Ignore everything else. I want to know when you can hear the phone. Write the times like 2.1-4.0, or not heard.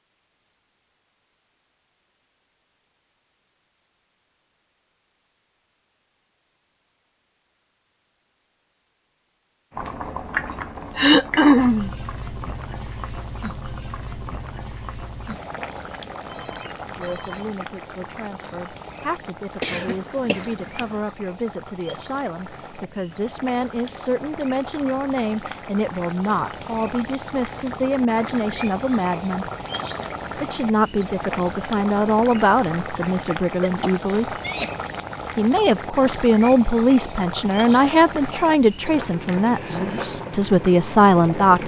16.2-17.5.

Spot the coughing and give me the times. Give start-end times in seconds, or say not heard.
10.9-11.9, 19.6-20.9, 33.5-34.7.